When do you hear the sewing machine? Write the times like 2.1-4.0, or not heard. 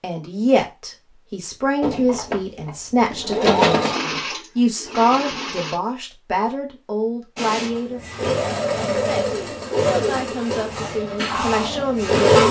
1.8-5.8, 7.3-12.4.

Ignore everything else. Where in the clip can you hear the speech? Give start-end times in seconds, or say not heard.
0.0-8.0, 8.9-12.4.